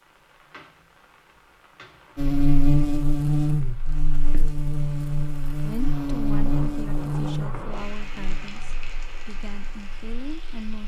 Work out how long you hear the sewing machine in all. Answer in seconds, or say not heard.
not heard.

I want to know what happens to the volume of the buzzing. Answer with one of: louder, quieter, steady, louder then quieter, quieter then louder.
quieter.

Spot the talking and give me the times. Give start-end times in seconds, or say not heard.
5.7-10.8.